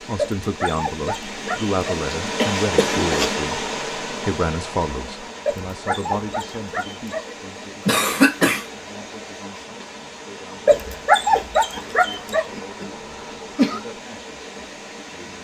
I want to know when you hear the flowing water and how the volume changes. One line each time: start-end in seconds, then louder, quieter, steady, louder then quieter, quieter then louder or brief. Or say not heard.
0.0-15.3 quieter.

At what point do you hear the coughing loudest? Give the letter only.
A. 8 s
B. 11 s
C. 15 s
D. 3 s
A.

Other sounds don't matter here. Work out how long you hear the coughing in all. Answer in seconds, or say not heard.
3 s.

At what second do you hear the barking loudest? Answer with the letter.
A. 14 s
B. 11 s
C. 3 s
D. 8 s
B.